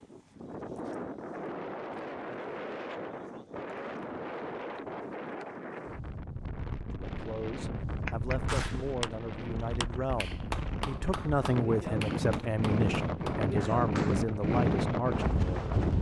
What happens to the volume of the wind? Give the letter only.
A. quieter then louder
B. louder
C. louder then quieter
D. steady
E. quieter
B.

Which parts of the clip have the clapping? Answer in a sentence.
The clapping can be heard from 8.1 to 14.3 s.